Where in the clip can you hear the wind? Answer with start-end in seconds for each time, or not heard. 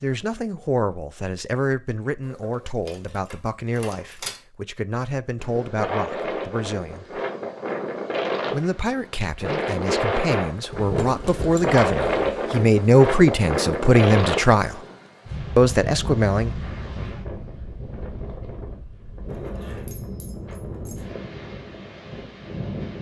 5.3-22.9.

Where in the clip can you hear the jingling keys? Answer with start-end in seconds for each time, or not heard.
2.3-4.4, 10.7-12.3, 19.2-21.1.